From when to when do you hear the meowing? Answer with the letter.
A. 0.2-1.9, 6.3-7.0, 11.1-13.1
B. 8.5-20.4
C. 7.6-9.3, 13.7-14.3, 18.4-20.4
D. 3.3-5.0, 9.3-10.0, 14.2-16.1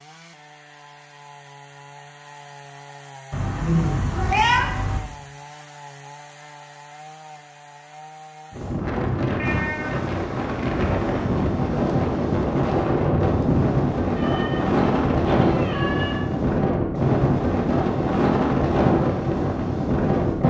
D.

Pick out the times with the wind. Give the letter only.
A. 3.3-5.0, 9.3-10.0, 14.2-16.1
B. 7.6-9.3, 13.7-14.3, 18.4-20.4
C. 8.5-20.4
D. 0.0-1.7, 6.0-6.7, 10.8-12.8
C.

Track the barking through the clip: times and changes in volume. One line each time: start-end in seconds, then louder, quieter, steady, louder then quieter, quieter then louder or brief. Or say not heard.
not heard.